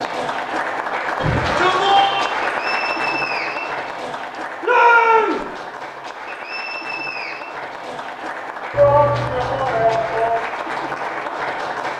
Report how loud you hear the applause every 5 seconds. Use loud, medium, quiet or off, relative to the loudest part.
loud, medium, loud.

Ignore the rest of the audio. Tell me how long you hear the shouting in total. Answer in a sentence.
The shouting can be heard for 4 seconds in total.